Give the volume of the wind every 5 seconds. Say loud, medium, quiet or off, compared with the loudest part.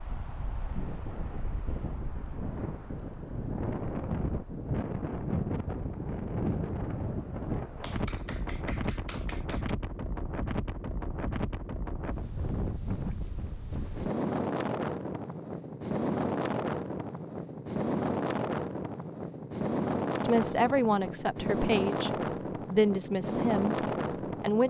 medium, loud, loud, loud, loud.